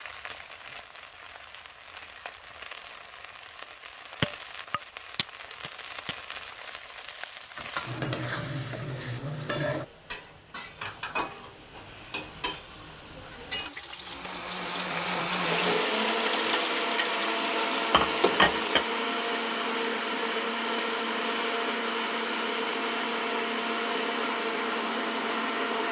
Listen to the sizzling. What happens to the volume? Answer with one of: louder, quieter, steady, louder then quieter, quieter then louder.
louder.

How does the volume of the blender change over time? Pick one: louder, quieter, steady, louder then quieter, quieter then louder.
steady.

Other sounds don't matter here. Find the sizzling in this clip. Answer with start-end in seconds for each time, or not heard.
0.0-18.9.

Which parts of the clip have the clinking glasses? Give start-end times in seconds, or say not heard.
4.2-6.2.